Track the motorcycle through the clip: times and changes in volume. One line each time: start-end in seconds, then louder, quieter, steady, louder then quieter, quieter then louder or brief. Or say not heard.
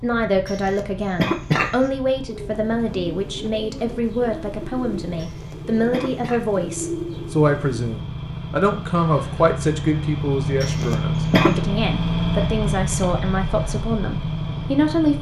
0.0-15.1 louder.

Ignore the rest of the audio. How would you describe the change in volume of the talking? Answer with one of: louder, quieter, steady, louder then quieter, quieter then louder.
steady.